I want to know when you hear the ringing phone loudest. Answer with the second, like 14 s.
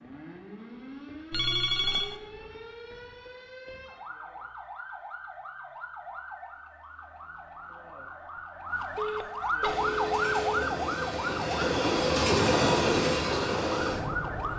2 s.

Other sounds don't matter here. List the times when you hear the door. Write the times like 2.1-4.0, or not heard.
not heard.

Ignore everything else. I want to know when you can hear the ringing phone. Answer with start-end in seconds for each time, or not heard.
1.3-2.2, 8.9-10.7.